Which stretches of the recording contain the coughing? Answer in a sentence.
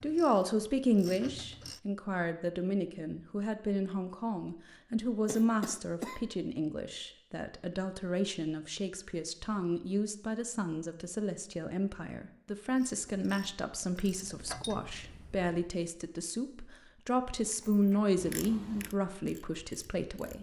You can hear the coughing from 5.2 to 6.2 s.